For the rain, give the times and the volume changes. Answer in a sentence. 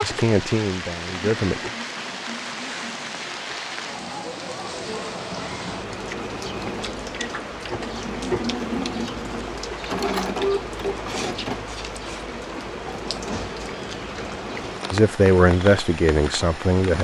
You can hear the rain from 0.0 to 16.9 s, at a steady volume.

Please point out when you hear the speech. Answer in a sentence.
You can hear the speech from 0.0 to 1.7 s and from 14.9 to 16.9 s.